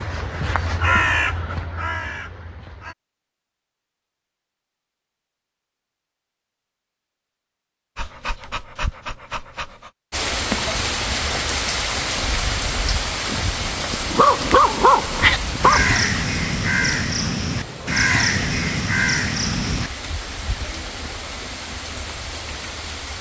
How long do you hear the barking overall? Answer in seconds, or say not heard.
4 s.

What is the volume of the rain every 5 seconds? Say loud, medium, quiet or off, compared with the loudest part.
off, off, loud, medium, medium.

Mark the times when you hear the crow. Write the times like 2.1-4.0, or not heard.
0.0-3.0, 15.1-19.9.